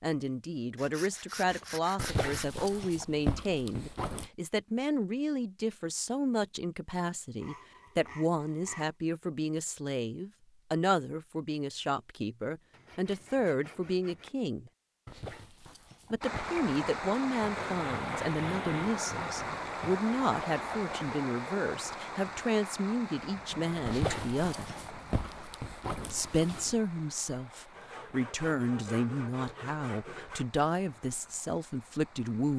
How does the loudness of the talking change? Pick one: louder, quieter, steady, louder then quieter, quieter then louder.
steady.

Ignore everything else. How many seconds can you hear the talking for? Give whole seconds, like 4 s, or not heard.
30 s.